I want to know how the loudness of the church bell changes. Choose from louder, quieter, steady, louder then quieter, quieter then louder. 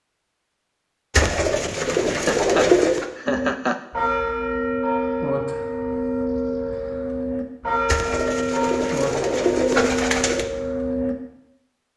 steady.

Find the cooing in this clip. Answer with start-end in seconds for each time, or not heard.
1.1-3.0, 7.8-10.4.